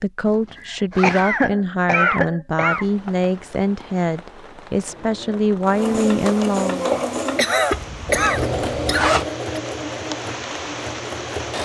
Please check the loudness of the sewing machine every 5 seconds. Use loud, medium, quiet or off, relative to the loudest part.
off, loud, medium.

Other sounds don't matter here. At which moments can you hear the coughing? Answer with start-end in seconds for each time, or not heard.
0.6-2.9, 7.3-9.6.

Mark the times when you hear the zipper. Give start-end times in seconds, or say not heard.
0.2-1.4, 7.7-9.2.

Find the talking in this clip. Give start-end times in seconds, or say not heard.
0.0-6.9.